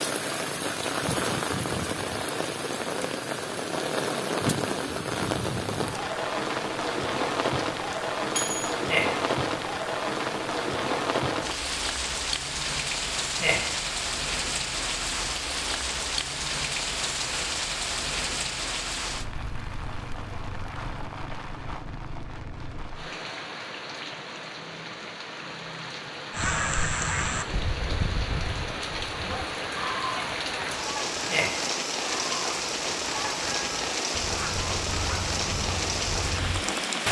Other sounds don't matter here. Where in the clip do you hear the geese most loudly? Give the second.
27 s.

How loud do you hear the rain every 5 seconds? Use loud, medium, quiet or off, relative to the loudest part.
loud, loud, loud, loud, medium, medium, loud, loud.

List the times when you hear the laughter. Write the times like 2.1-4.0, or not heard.
8.8-9.2, 13.4-13.8, 31.2-31.7.